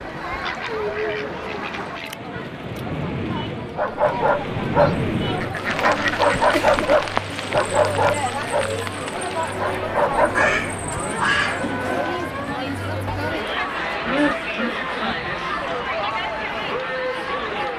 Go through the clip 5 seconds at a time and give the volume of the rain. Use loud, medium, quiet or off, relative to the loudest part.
loud, loud, medium, medium.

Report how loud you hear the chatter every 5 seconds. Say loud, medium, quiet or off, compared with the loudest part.
medium, loud, loud, loud.